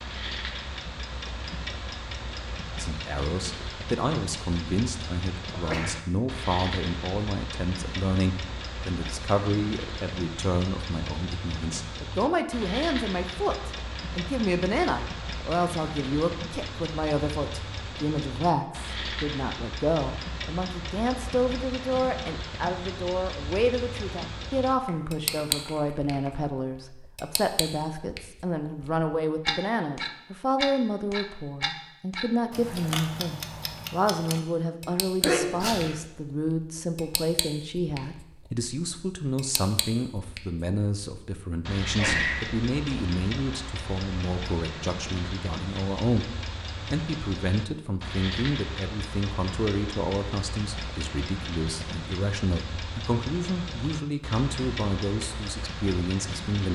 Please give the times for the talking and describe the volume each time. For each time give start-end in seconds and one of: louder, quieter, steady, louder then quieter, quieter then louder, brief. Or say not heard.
2.8-56.6 steady.